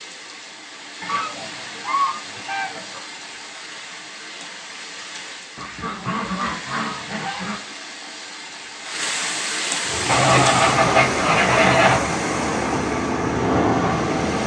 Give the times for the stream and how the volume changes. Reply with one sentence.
You can hear the stream from 0.0 to 14.4 s, getting louder.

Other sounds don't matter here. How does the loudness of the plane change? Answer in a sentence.
The volume of the plane goes up.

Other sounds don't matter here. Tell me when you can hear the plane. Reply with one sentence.
The plane can be heard from 9.8 to 14.4 s.